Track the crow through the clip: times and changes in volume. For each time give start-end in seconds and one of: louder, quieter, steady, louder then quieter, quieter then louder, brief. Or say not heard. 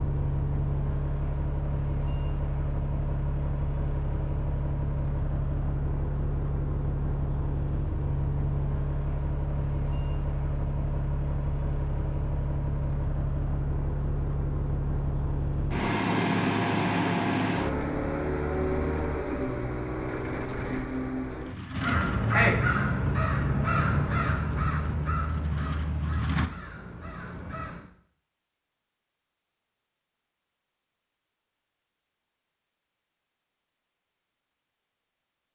21.7-27.9 quieter.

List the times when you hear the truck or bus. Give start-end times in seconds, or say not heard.
0.0-26.5.